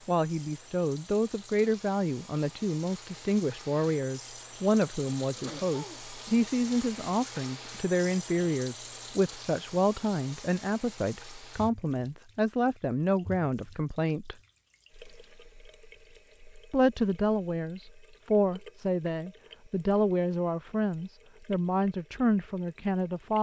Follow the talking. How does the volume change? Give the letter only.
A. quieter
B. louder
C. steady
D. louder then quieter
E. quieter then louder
C.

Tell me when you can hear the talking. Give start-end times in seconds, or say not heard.
0.1-14.3, 16.7-23.3.